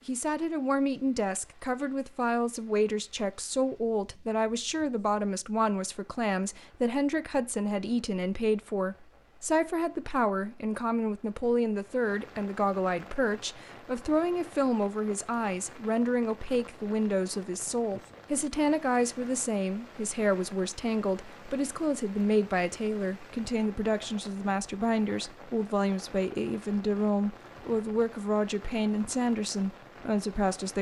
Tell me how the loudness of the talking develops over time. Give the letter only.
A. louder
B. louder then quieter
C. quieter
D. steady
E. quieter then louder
D.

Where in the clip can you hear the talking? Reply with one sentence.
You can hear the talking from 0.1 to 30.7 s.